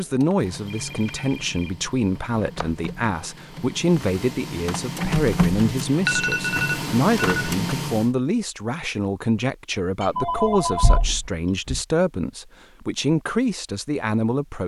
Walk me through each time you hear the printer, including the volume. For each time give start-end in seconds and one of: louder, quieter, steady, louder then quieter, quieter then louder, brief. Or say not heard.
0.0-8.1 louder.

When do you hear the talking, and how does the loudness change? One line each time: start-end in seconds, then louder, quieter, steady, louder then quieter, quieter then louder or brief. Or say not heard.
0.0-14.6 steady.